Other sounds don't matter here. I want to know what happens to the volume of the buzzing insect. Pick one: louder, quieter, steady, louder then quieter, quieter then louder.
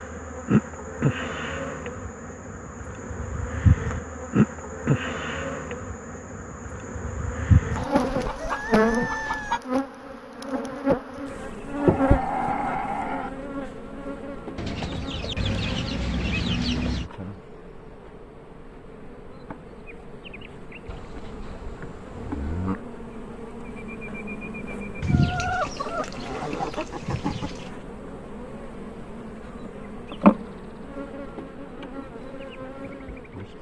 quieter then louder.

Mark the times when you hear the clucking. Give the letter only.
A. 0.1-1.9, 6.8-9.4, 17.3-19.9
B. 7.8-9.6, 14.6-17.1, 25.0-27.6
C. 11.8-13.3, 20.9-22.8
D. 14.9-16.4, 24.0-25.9
B.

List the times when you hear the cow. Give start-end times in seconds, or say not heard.
11.8-13.3, 20.9-22.8.